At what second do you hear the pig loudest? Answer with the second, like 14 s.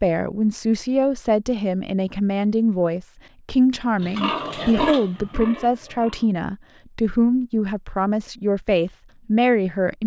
5 s.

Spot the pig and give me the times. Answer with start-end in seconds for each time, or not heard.
4.0-6.3.